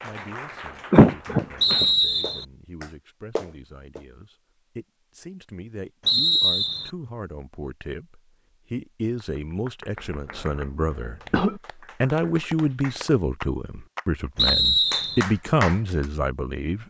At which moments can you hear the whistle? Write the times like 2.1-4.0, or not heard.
1.6-2.5, 6.0-6.9, 14.3-15.2.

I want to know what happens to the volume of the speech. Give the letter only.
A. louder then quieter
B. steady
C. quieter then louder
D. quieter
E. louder
E.